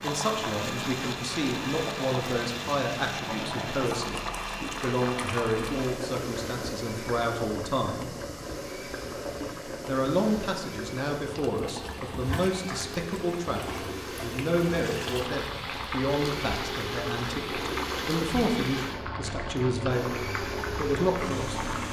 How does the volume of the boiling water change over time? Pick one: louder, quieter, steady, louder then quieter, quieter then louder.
steady.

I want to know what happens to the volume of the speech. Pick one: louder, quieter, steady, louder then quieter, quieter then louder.
steady.